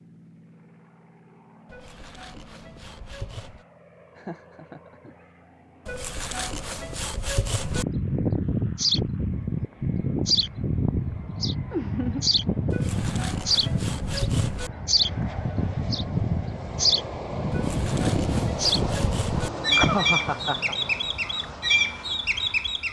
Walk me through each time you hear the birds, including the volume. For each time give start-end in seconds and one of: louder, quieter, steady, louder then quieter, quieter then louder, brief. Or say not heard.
7.6-22.8 steady.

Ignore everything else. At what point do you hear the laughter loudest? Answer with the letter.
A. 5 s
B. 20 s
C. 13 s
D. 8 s
B.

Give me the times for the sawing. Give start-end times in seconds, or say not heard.
1.6-3.6, 5.8-7.8, 12.7-14.7, 17.5-19.5.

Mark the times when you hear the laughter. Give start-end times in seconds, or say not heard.
4.2-5.2, 11.7-12.3, 19.3-20.8.